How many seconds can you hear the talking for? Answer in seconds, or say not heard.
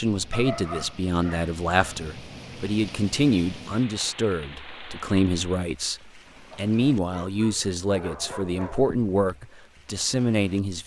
11 s.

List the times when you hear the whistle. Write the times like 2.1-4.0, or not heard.
not heard.